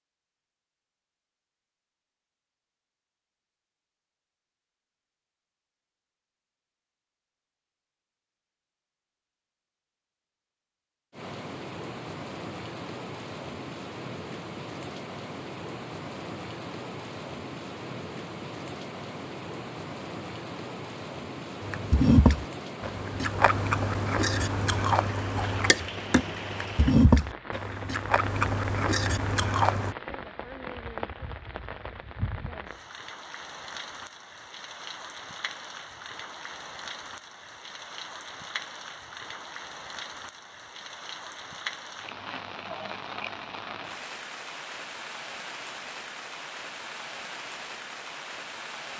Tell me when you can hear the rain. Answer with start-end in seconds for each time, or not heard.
11.1-48.9.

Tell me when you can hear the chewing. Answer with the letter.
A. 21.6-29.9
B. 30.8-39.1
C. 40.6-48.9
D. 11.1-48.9
A.